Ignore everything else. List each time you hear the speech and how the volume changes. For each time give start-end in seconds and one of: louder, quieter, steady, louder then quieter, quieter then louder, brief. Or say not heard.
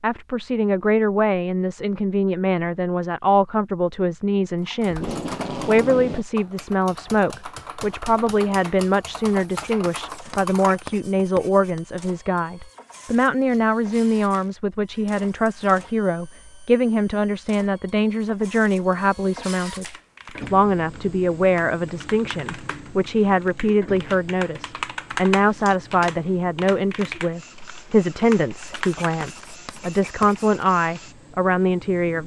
0.0-19.9 steady
20.5-32.2 steady.